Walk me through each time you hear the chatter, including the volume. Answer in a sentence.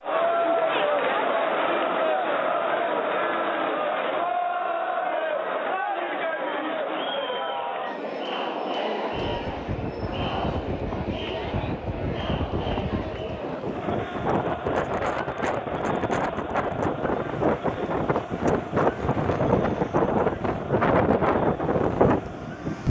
You can hear the chatter from 0.0 to 22.8 s, getting quieter.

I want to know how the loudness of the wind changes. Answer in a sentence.
The volume of the wind goes up.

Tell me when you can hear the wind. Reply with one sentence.
The wind can be heard from 9.1 to 22.8 s.